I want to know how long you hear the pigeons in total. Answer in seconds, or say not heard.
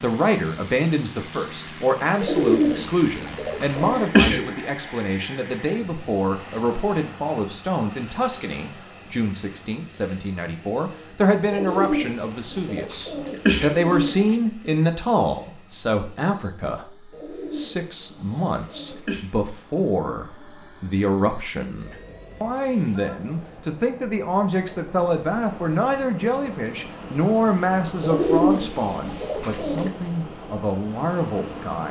9 s.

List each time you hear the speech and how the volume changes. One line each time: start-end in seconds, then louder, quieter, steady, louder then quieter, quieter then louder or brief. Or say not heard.
0.0-31.8 steady.